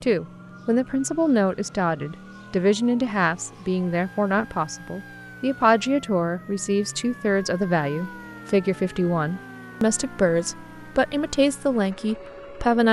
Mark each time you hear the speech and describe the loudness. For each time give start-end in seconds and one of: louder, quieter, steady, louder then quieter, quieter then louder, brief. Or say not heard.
0.0-12.8 steady.